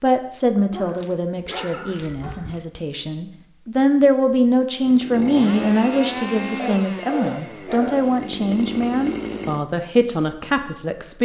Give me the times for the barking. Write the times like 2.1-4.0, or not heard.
0.7-2.6, 6.5-8.2.